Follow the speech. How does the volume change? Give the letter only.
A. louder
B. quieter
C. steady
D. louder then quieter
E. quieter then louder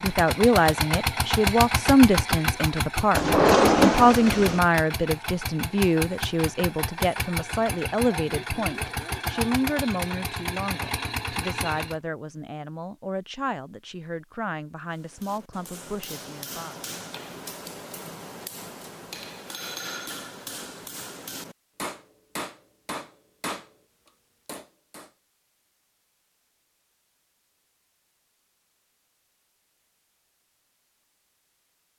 B.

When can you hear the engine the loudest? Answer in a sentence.
The loudest moment of the engine is at 2 seconds.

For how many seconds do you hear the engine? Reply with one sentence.
The engine can be heard for 12 seconds in total.